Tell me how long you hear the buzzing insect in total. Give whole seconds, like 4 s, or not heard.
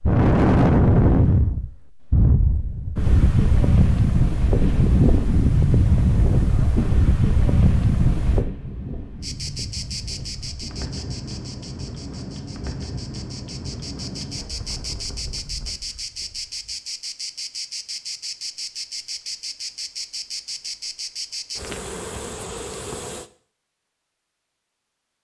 14 s.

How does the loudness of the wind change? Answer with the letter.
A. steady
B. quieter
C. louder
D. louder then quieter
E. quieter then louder
B.